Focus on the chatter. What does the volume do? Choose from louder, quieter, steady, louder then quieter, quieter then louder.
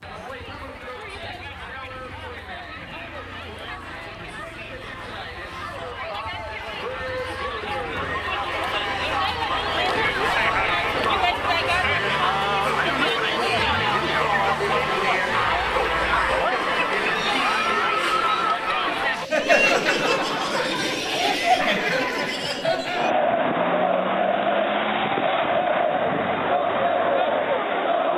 louder.